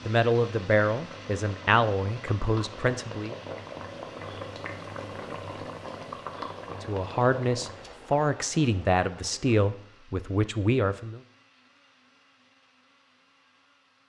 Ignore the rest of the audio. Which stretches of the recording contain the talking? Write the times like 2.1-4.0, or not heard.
0.1-3.4, 6.8-11.2.